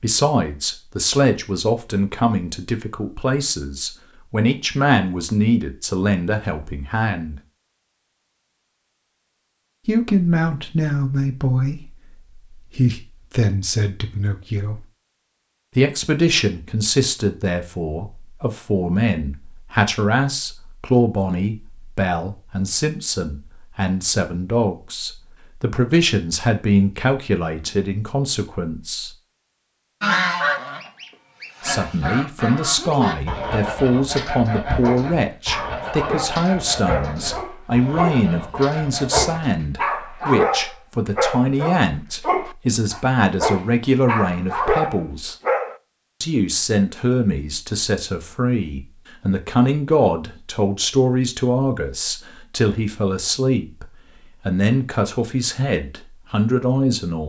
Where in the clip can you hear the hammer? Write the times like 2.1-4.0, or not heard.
not heard.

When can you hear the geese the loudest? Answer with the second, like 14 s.
30 s.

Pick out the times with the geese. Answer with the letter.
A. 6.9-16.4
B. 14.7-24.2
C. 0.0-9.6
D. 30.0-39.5
D.